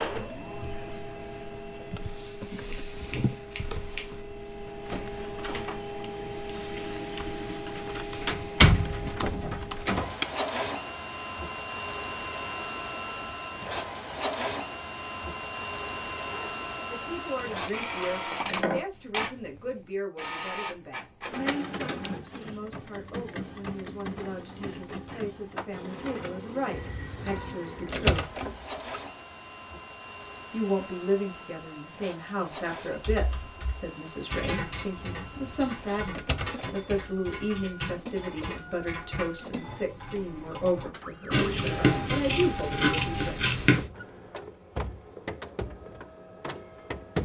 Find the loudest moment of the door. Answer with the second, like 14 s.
9 s.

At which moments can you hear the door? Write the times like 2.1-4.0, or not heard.
8.2-10.2, 26.7-29.0, 35.0-36.8.